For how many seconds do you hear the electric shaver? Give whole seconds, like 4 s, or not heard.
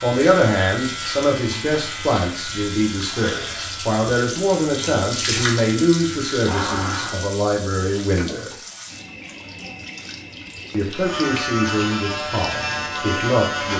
10 s.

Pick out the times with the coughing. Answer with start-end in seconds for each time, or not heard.
not heard.